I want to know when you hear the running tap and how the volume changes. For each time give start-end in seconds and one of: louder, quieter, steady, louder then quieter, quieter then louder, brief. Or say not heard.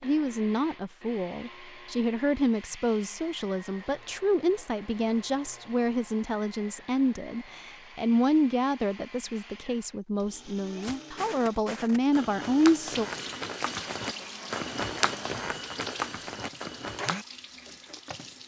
12.8-18.4 quieter.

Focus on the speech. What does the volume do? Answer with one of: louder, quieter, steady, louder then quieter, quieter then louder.
steady.